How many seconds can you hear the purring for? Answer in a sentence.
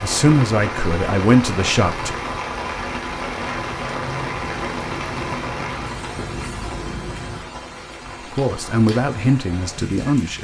The purring can be heard for 4 seconds in total.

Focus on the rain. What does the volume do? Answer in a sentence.
The loudness of the rain goes down.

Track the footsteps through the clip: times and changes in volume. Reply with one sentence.
You can't hear the footsteps here.